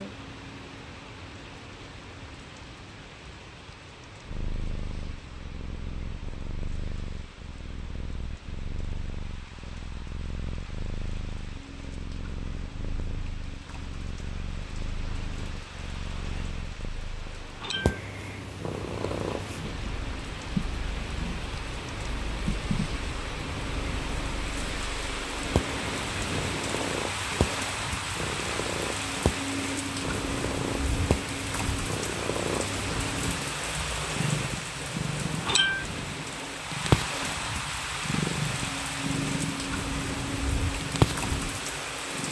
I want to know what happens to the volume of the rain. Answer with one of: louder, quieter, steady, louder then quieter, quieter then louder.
louder.